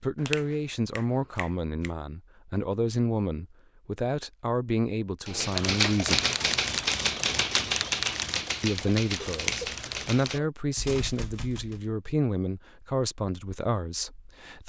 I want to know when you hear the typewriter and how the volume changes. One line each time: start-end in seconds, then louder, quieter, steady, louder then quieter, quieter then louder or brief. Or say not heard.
5.2-11.8 quieter.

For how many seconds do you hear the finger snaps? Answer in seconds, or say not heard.
3 s.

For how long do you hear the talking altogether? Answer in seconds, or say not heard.
12 s.